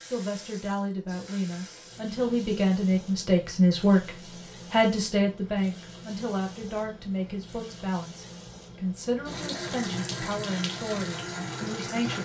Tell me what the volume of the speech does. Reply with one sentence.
The volume of the speech goes up, then down.